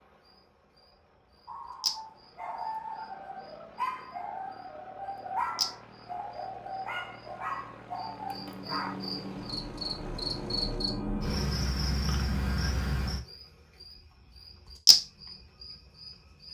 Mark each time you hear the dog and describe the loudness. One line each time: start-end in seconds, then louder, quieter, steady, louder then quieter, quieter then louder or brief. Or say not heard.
1.4-8.9 steady.